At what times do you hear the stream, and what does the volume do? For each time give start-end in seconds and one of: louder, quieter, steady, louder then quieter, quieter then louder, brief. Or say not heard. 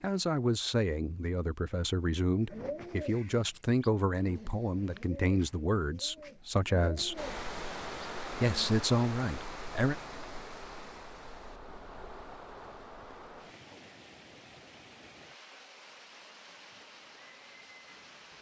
7.2-18.3 quieter.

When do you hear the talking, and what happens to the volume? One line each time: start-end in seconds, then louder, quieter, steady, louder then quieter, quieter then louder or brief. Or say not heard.
0.0-7.2 steady
8.4-9.9 brief.